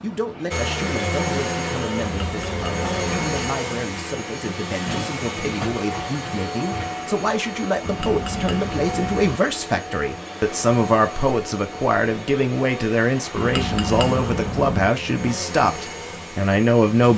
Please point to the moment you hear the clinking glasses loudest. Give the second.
14 s.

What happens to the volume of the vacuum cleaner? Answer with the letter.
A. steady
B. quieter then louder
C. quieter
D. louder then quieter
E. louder
C.